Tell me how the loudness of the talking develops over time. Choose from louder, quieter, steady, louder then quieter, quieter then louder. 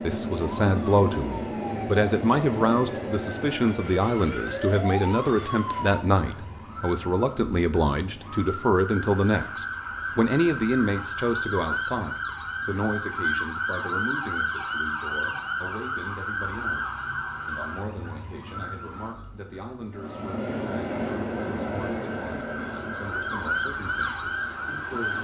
quieter.